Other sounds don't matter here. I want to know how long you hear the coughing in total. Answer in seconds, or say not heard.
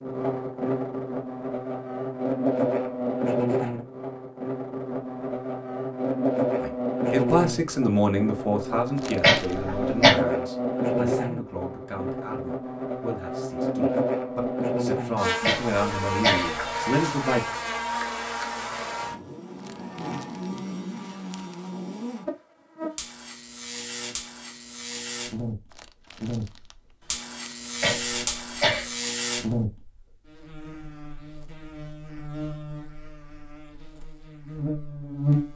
3 s.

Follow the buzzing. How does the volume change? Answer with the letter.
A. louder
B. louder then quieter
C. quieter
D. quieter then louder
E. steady
C.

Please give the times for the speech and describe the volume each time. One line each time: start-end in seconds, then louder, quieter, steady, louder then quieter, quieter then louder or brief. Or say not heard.
6.5-17.5 quieter then louder.